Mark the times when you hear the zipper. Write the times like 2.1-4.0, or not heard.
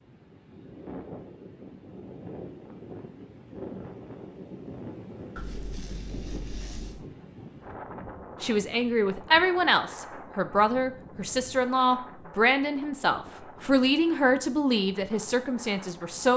5.3-7.0.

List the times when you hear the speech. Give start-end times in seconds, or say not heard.
8.4-16.3.